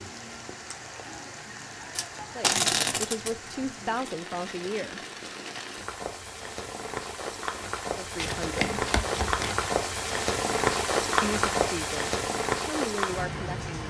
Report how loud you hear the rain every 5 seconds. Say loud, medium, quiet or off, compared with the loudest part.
quiet, medium, loud.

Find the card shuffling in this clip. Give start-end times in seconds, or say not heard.
1.9-3.4, 8.2-9.7.